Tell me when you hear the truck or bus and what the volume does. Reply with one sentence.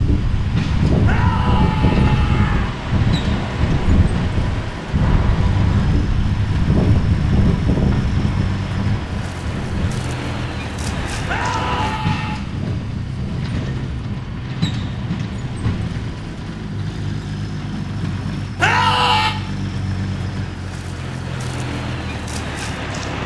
The truck or bus can be heard from 0.0 to 23.2 s, at a steady volume.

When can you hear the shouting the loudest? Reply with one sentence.
The loudest moment of the shouting is at 19 seconds.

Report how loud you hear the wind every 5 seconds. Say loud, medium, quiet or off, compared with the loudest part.
loud, loud, medium, quiet, off.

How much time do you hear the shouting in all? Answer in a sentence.
The shouting can be heard for 4 seconds in total.